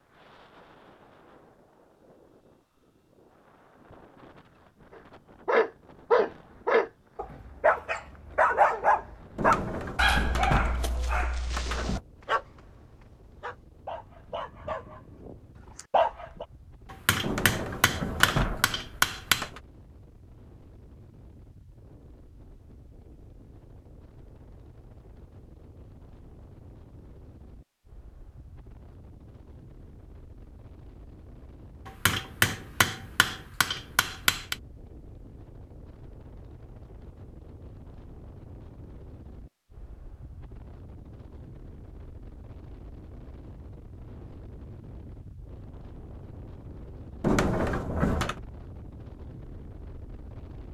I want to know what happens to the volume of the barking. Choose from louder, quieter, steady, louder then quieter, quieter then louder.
quieter.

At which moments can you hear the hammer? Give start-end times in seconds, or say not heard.
16.9-19.4, 31.9-34.5.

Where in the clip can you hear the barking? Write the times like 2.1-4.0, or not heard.
5.5-16.4.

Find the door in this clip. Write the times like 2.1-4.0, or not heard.
9.3-12.0, 17.2-19.6, 47.2-48.4.